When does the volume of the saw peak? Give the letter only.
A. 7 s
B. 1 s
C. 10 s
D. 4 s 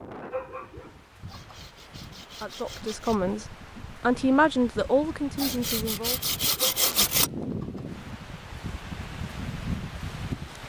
A.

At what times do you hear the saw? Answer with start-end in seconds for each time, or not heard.
1.2-3.2, 5.3-7.3.